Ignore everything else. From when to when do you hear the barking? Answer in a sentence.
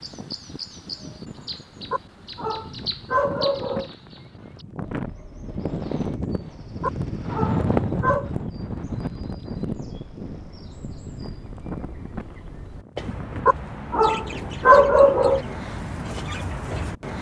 You can hear the barking from 1.9 to 3.9 s, from 6.8 to 8.3 s and from 13.4 to 15.4 s.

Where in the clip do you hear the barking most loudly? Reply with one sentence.
The volume of the barking peaks at 15 seconds.